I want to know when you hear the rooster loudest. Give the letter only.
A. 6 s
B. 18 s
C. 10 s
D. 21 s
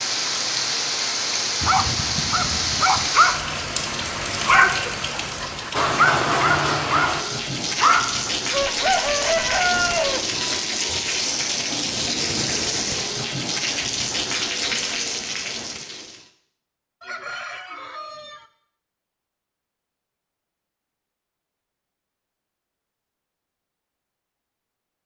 C.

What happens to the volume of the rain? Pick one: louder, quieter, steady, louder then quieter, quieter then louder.
steady.